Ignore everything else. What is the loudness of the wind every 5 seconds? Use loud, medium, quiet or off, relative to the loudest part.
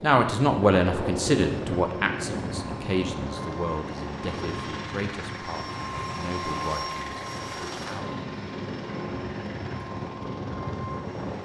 loud, medium, loud.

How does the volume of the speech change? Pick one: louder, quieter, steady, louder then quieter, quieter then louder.
quieter.